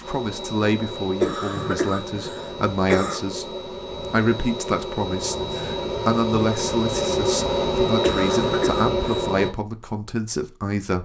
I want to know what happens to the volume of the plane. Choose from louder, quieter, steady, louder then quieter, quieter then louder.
louder.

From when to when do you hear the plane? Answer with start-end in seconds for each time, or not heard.
0.0-9.5.